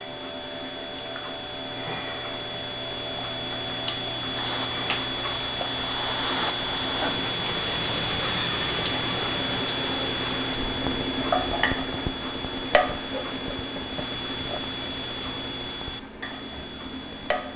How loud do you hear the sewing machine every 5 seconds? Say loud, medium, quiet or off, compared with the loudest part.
medium, loud, loud, medium.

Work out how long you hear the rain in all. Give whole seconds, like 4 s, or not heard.
13 s.